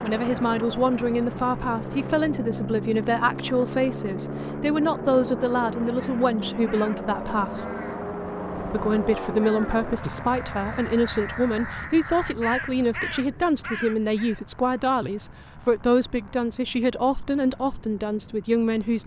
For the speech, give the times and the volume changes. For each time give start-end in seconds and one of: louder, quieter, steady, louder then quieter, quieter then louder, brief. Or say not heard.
0.0-7.7 steady
8.7-19.0 steady.